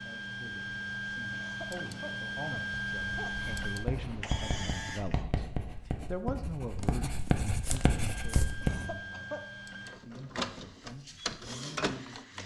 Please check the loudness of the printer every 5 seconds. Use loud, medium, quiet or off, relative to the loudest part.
loud, medium, loud.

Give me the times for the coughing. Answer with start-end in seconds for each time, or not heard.
1.3-3.9, 8.6-9.4.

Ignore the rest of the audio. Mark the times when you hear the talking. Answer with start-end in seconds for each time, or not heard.
0.0-12.4.